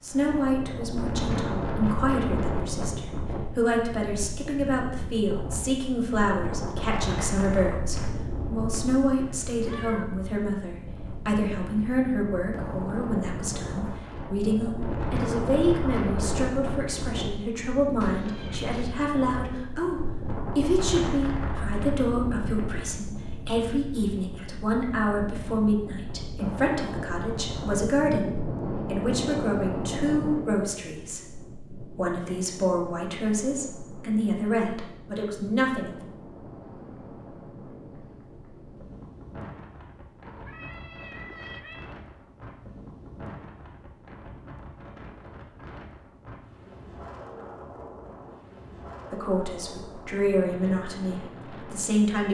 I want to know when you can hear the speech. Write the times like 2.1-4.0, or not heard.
0.0-36.0, 49.1-52.2.